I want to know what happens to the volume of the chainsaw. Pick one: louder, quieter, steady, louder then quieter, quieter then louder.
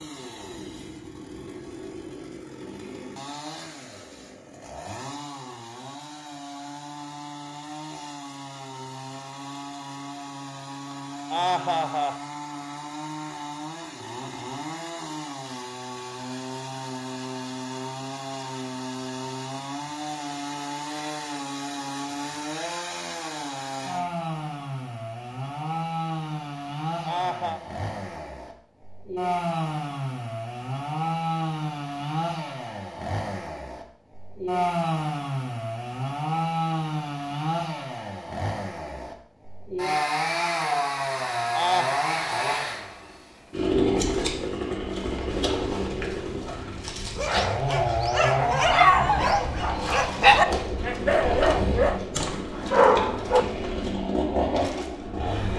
louder.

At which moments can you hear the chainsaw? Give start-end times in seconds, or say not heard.
0.0-55.5.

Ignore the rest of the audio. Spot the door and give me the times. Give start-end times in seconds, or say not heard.
not heard.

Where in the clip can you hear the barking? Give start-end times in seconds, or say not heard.
47.1-53.5.